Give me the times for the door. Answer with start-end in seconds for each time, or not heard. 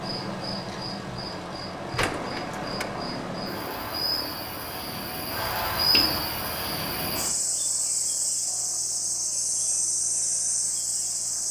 1.9-2.9, 5.9-6.3.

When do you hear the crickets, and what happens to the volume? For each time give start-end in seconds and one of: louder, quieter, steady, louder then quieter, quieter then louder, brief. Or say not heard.
0.0-11.4 louder.